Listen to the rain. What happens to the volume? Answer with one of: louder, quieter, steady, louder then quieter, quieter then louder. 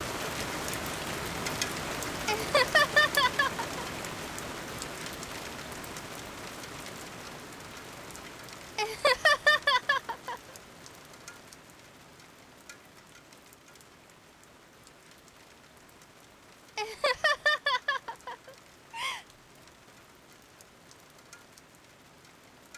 quieter.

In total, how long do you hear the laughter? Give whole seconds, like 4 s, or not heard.
6 s.